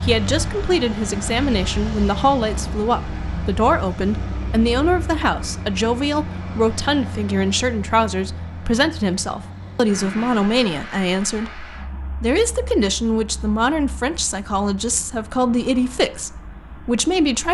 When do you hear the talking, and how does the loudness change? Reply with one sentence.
The talking can be heard from 0.0 to 17.4 s, at a steady volume.